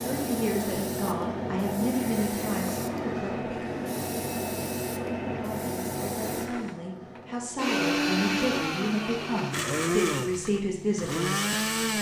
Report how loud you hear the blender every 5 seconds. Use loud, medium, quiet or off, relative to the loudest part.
quiet, loud, loud.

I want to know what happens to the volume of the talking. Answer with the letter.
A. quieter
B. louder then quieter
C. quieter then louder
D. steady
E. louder
C.